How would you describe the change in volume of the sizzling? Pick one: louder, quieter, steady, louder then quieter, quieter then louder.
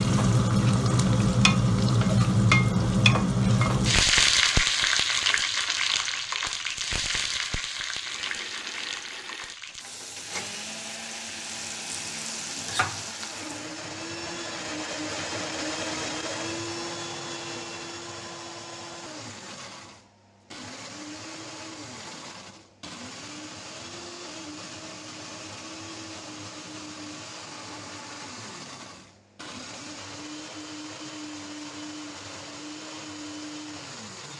quieter.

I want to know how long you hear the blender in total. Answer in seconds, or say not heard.
26 s.